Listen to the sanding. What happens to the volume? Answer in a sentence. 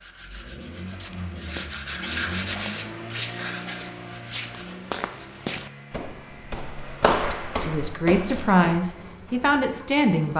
The loudness of the sanding goes up, then down.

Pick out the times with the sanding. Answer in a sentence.
You can hear the sanding from 0.0 to 4.8 s.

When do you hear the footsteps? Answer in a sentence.
You can hear the footsteps from 0.9 to 8.9 s.